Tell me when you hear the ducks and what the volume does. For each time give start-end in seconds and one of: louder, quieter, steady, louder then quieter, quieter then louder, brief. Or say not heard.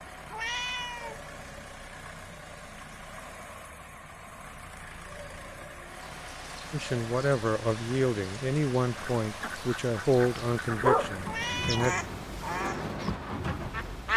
8.9-14.1 louder then quieter.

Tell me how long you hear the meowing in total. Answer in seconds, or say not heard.
2 s.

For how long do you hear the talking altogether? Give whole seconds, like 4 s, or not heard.
5 s.